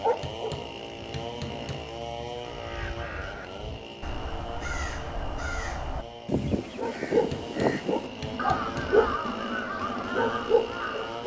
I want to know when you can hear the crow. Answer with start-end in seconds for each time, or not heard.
2.4-11.2.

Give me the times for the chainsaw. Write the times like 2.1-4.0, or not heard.
0.0-11.2.